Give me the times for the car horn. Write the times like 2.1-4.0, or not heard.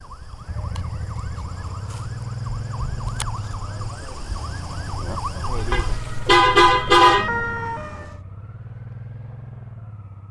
5.7-7.2.